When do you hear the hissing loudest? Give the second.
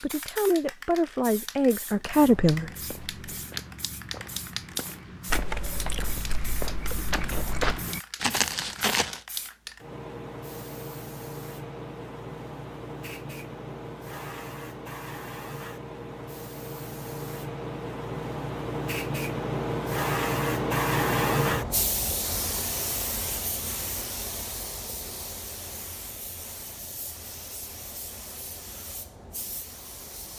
21 s.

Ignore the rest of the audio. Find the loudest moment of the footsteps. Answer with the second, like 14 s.
8 s.